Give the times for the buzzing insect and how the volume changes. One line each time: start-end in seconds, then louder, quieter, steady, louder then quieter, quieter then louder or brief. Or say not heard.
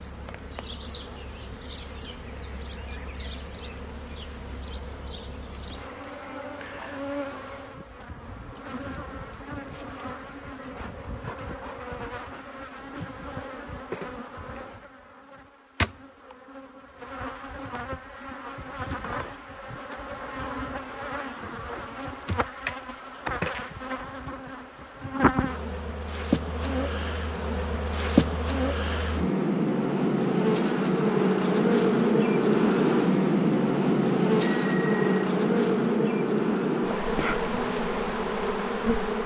0.0-39.2 louder.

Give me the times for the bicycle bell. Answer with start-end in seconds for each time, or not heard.
34.4-35.2.